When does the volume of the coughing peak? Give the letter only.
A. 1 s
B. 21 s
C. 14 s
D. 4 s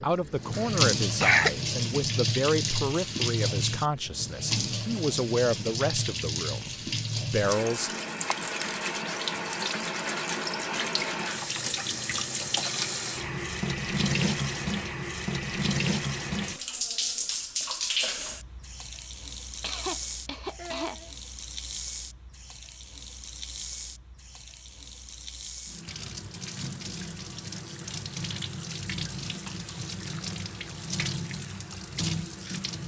A.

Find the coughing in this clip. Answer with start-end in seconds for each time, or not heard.
0.6-1.5, 19.6-21.1.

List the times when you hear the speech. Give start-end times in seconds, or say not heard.
0.0-7.9.